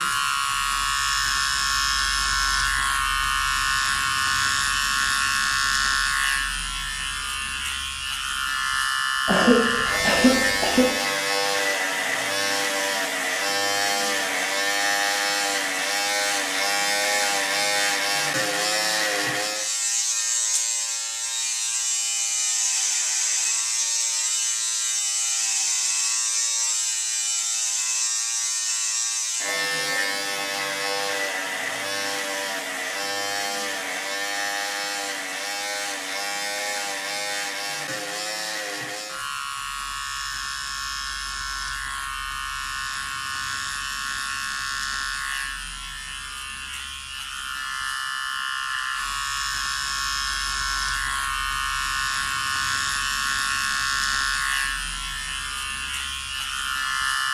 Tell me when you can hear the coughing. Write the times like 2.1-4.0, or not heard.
9.2-10.8.